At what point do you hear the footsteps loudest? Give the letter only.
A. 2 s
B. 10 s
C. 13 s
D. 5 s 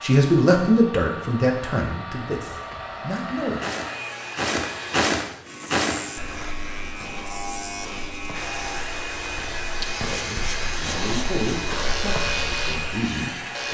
D.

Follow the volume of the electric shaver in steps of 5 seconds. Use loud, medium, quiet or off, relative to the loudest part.
off, loud, loud.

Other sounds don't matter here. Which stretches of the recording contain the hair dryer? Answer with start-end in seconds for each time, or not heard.
0.0-5.2, 8.3-13.7.